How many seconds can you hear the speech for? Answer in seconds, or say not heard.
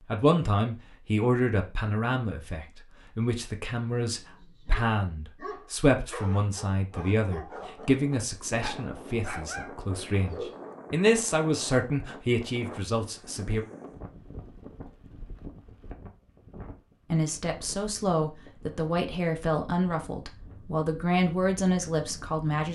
19 s.